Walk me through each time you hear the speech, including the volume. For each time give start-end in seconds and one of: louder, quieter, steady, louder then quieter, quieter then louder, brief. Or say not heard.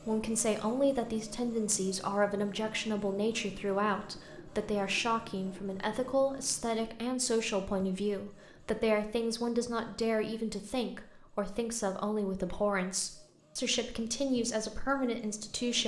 0.1-15.8 steady.